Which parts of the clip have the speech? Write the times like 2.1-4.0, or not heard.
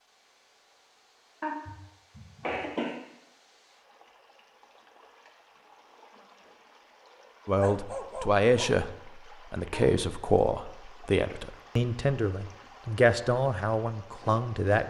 7.5-14.8.